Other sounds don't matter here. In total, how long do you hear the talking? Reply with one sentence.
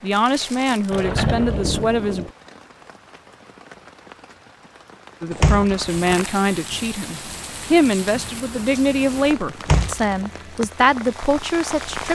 The talking can be heard for 9 seconds in total.